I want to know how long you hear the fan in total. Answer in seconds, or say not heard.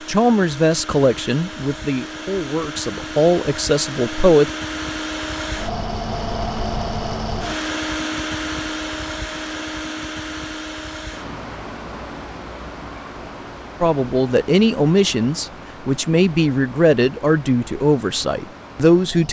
19 s.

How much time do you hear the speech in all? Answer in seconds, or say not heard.
10 s.